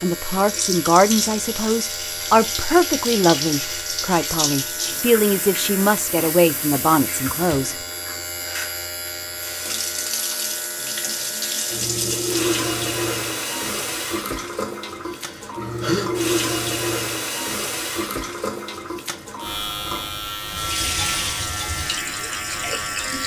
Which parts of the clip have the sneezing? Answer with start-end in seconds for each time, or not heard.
15.1-16.1.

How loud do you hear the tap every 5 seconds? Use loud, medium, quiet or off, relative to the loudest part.
loud, medium, loud, loud, loud.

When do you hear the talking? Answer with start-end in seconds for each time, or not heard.
0.0-7.8.